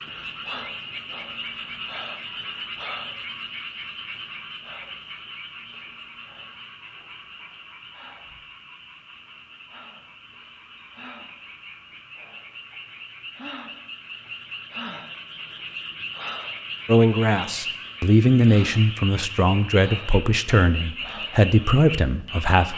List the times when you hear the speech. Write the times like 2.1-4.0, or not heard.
16.9-22.7.